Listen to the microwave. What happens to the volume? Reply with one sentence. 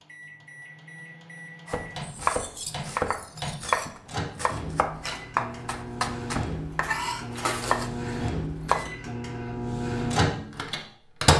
The loudness of the microwave goes up.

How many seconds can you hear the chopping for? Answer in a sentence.
You can hear the chopping for 7 seconds altogether.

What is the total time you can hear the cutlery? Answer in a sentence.
You can hear the cutlery for 3 seconds altogether.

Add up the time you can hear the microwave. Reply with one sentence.
You can hear the microwave for 11 seconds altogether.